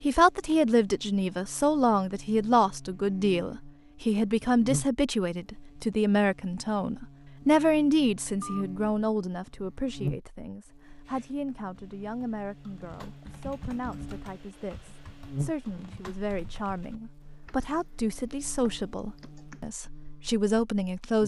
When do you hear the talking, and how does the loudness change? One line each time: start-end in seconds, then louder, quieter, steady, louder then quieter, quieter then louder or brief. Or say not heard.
0.0-21.2 quieter then louder.